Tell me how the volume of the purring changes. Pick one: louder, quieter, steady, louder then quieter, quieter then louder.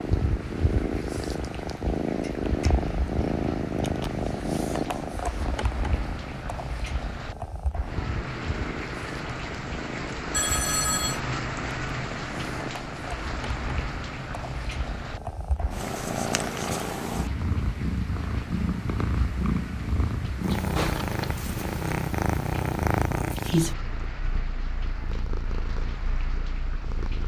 quieter then louder.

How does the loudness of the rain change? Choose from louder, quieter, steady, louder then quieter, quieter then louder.
louder then quieter.